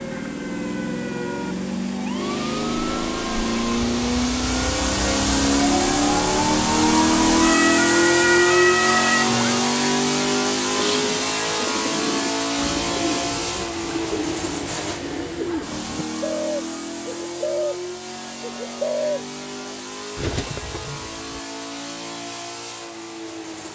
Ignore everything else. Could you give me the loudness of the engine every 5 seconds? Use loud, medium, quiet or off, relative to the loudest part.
medium, loud, medium, quiet, quiet.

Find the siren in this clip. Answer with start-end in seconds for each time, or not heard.
0.0-9.7.